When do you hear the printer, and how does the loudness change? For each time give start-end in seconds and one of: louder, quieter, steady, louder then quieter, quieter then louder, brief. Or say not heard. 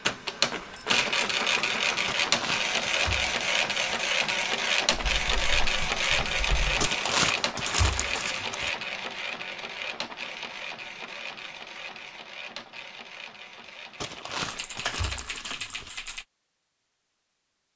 0.0-15.2 quieter.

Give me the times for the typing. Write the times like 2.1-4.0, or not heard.
5.1-6.9, 14.4-16.2.